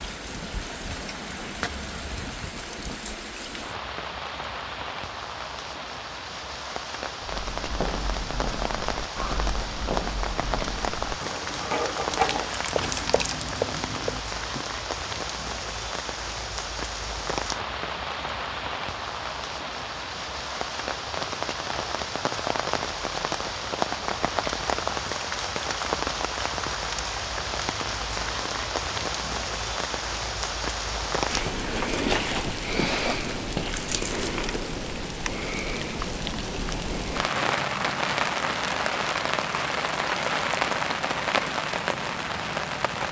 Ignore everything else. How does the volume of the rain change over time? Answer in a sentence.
The volume of the rain goes up.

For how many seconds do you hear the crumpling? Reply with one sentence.
The crumpling can be heard for 2 seconds in total.